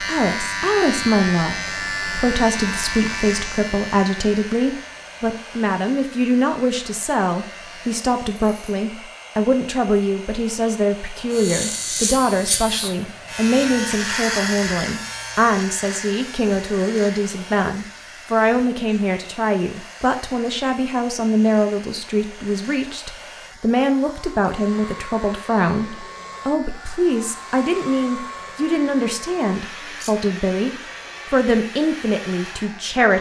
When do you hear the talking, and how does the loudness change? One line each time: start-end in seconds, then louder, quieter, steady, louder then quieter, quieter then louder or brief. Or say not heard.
0.1-33.1 steady.